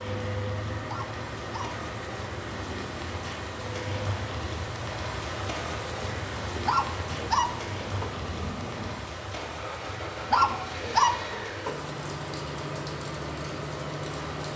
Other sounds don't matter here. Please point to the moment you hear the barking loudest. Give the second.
11 s.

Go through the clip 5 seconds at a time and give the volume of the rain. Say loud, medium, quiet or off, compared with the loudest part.
loud, loud, medium.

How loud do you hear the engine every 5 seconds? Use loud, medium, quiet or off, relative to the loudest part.
loud, medium, loud.